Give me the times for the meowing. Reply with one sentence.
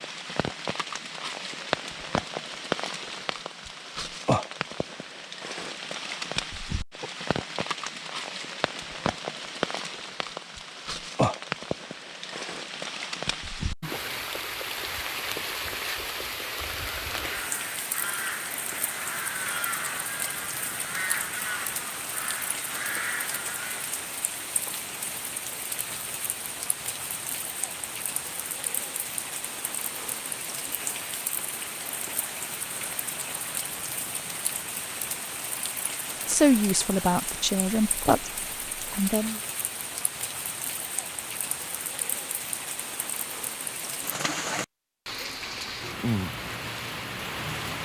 The meowing can't be heard in this clip.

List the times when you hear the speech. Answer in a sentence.
You can hear the speech from 36.2 to 38.3 s and from 38.9 to 39.4 s.